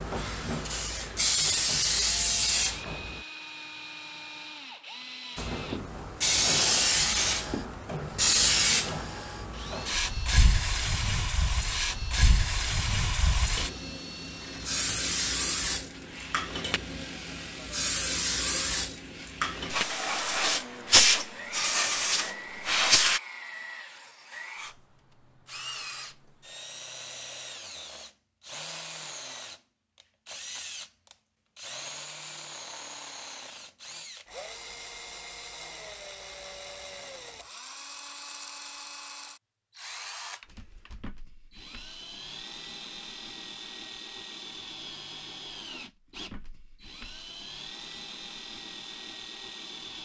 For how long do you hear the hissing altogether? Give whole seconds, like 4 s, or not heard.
21 s.